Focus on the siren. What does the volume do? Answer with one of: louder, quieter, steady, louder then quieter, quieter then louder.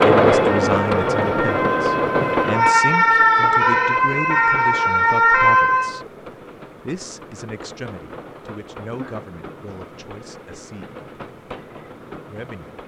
louder.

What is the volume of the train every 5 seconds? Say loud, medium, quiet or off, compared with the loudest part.
loud, quiet, quiet.